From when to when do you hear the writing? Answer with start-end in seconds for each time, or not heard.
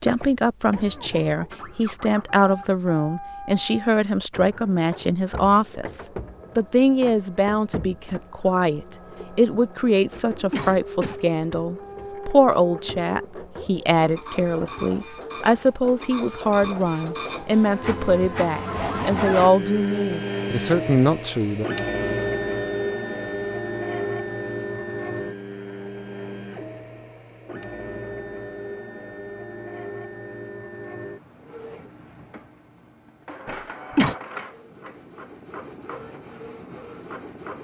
not heard.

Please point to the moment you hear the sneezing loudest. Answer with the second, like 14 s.
34 s.